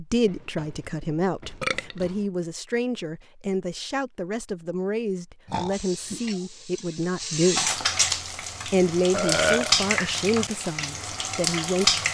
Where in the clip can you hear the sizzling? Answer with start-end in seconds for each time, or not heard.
5.7-12.0.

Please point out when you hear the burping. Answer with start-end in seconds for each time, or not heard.
0.2-2.1, 5.5-6.3, 9.1-9.8.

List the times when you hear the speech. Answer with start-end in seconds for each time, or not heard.
0.0-7.8, 8.7-12.0.